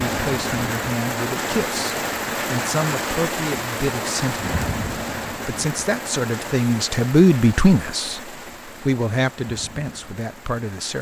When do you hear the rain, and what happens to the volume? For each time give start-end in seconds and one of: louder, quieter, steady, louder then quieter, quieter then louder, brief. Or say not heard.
0.0-10.9 quieter.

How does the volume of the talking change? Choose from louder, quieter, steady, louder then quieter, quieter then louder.
louder then quieter.